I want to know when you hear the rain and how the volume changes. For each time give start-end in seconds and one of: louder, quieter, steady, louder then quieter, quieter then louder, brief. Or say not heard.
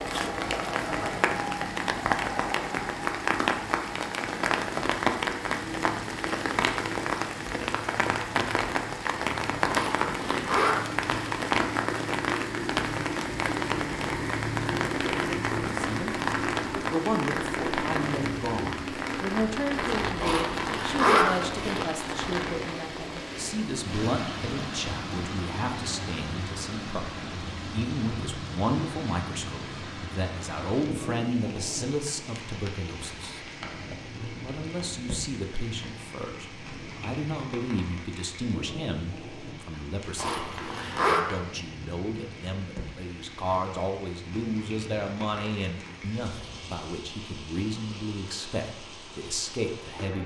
0.0-50.2 quieter.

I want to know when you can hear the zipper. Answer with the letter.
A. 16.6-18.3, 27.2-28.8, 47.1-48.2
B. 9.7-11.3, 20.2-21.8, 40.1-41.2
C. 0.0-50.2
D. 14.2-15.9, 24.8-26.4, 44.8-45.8
B.